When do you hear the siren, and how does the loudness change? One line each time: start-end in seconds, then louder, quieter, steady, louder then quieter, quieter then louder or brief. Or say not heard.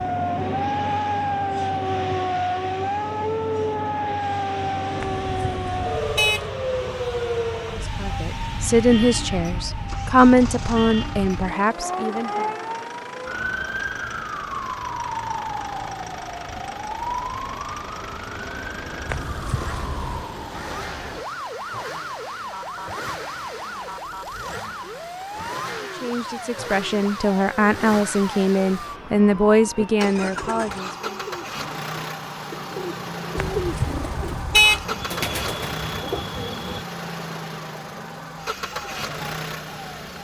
0.0-40.1 quieter.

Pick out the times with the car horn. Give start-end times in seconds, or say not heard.
5.0-6.5, 19.1-20.2, 33.4-34.9.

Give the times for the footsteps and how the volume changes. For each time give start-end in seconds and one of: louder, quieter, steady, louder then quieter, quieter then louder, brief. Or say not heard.
not heard.